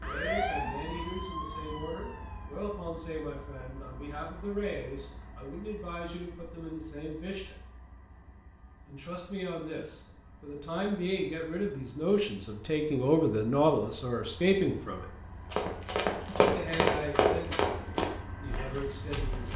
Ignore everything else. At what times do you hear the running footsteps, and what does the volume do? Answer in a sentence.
You can hear the running footsteps from 15.5 to 19.5 s, getting quieter.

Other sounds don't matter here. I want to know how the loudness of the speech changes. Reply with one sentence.
The loudness of the speech goes up, then down.